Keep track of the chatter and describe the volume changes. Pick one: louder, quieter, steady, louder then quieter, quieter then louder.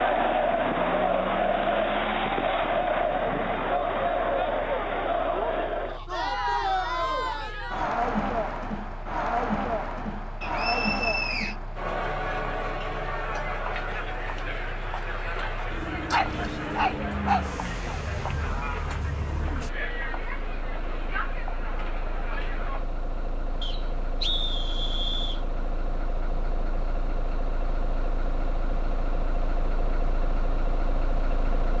quieter.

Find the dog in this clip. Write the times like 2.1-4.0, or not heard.
16.1-17.5.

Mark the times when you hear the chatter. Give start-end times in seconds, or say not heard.
0.0-22.9.